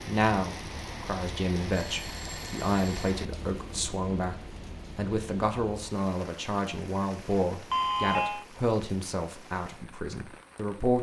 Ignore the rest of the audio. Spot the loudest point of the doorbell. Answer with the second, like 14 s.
8 s.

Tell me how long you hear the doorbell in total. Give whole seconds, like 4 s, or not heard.
2 s.